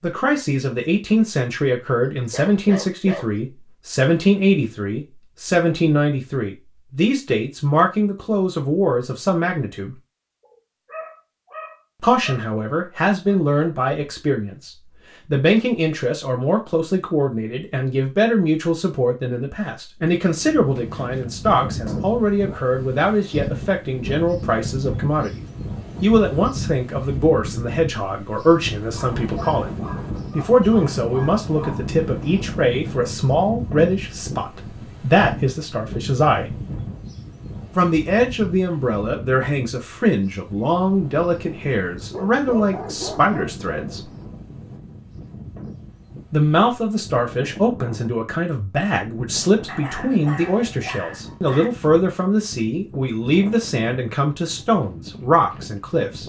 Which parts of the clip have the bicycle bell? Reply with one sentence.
The bicycle bell can't be heard in this clip.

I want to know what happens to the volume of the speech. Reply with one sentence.
The loudness of the speech stays about the same.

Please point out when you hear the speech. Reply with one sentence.
The speech can be heard from 0.0 to 9.9 s, from 12.0 to 25.4 s, from 26.0 to 29.7 s, from 30.4 to 36.6 s, from 37.8 to 44.0 s and from 46.3 to 56.2 s.